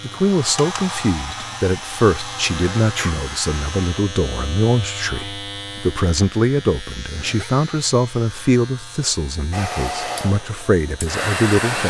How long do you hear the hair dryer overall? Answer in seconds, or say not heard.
6 s.